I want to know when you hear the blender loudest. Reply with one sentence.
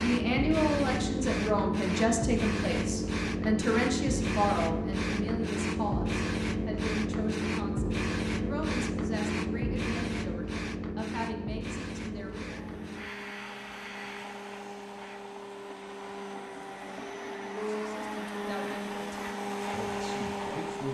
The volume of the blender peaks at 20 seconds.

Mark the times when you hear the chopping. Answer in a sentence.
The chopping can't be heard in this clip.